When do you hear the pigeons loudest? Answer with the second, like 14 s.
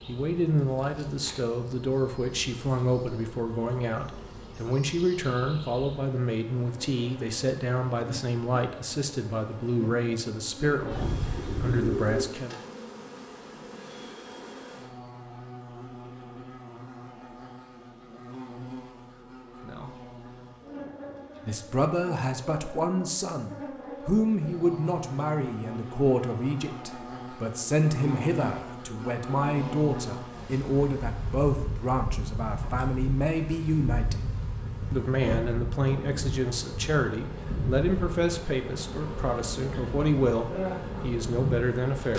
12 s.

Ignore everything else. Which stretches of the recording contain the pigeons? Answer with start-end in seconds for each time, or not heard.
10.6-12.2.